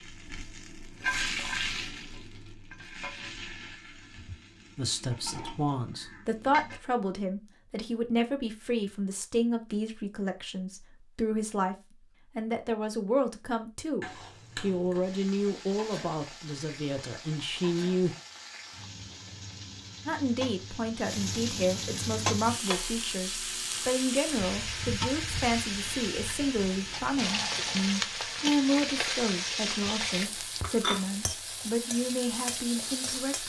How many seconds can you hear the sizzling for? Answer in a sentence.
You can hear the sizzling for 26 seconds altogether.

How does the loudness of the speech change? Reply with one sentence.
The loudness of the speech stays about the same.